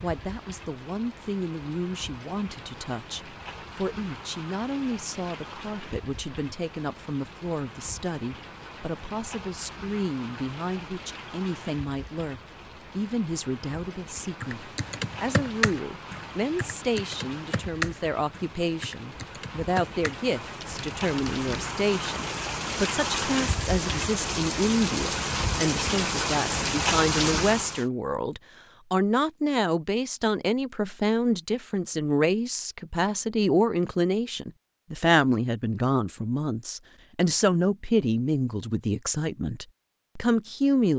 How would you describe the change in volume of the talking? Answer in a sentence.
The loudness of the talking goes up.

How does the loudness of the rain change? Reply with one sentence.
The loudness of the rain goes up.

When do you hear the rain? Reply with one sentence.
You can hear the rain from 0.0 to 27.9 s.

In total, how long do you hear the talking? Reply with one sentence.
The talking can be heard for 41 seconds in total.